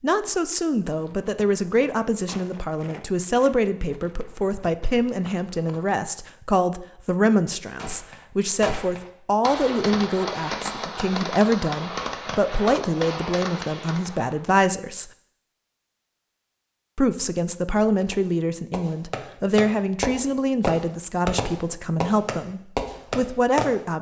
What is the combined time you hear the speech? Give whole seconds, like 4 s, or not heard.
22 s.